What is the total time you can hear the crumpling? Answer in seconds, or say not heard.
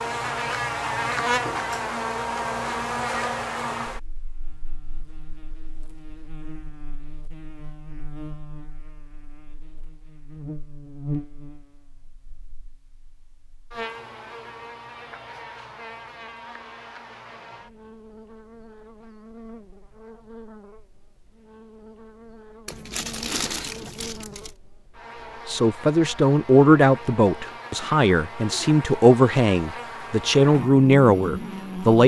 2 s.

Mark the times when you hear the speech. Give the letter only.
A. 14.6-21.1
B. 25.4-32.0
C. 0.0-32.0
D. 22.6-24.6
B.